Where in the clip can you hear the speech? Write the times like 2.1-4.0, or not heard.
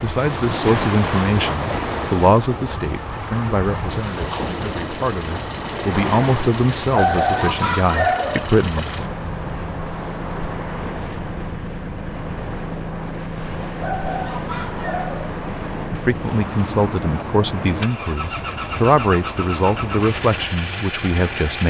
0.0-8.8, 15.9-21.6.